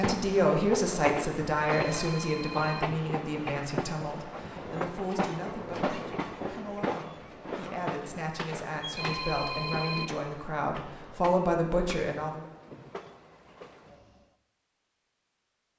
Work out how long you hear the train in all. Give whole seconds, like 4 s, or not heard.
14 s.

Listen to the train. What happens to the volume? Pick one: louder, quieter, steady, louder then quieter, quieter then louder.
quieter.